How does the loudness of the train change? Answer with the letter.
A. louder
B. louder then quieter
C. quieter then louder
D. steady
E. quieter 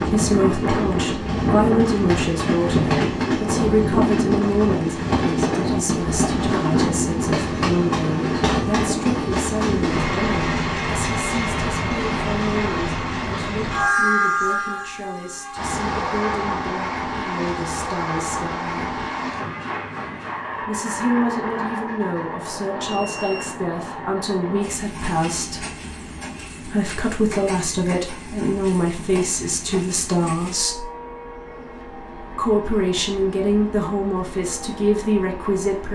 E.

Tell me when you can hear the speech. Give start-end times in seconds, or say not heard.
0.0-19.0, 20.6-25.6, 26.6-30.9, 32.4-35.9.